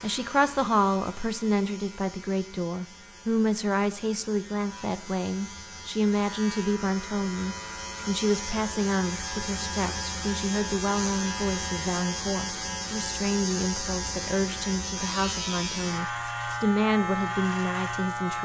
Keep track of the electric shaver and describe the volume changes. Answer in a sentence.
The volume of the electric shaver goes up.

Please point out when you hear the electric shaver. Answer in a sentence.
You can hear the electric shaver from 0.0 to 18.3 s.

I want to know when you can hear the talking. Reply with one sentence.
You can hear the talking from 0.0 to 18.3 s.